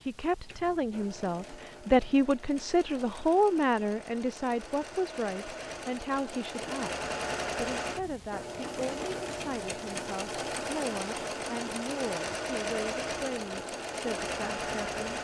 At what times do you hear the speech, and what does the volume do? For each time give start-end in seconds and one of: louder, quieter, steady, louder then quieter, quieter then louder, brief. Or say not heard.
0.0-15.1 quieter.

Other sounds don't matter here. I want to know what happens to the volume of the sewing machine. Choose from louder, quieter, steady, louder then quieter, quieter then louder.
louder.